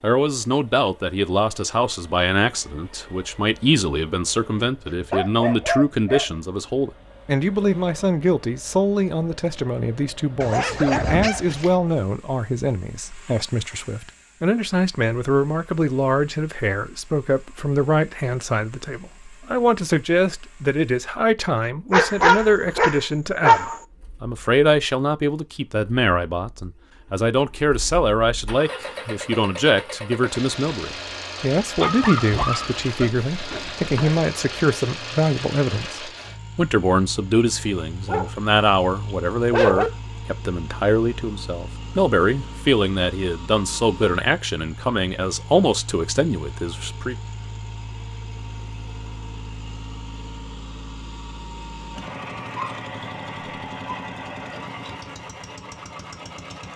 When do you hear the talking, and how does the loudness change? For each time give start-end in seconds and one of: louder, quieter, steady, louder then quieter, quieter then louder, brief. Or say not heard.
0.0-47.1 steady.